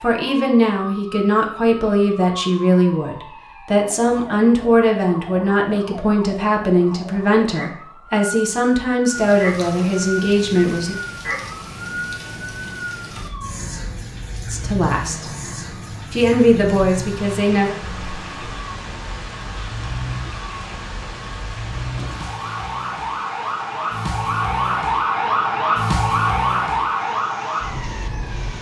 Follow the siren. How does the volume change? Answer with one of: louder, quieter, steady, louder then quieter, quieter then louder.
louder.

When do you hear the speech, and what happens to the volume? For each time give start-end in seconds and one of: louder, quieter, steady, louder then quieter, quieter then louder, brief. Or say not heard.
0.0-10.9 steady
14.5-15.2 brief
16.1-17.8 brief.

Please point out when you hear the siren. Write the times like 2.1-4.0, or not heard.
0.0-28.5.